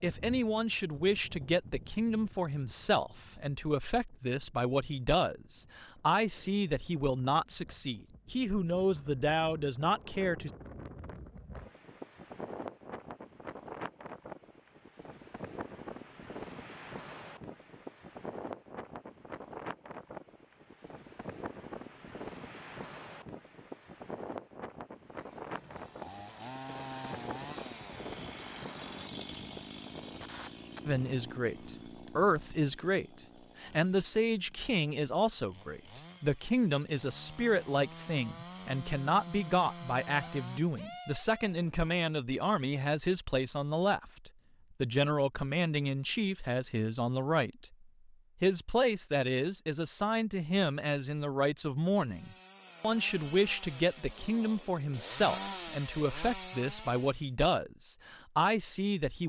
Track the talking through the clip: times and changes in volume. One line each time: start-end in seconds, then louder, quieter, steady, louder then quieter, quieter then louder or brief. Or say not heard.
0.0-10.5 steady
30.9-47.6 steady
48.4-59.2 steady.